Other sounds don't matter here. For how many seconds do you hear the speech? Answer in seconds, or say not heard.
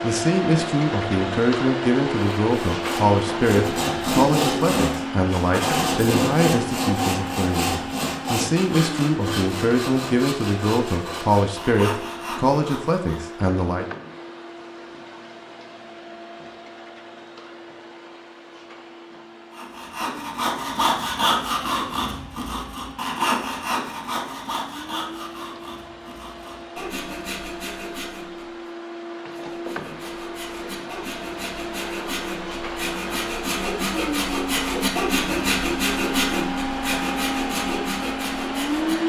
14 s.